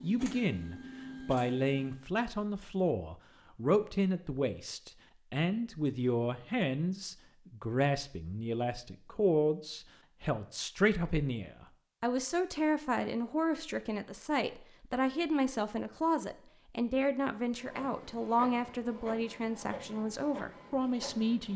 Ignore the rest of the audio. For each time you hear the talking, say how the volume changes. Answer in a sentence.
You can hear the talking from 0.0 to 21.5 s, at a steady volume.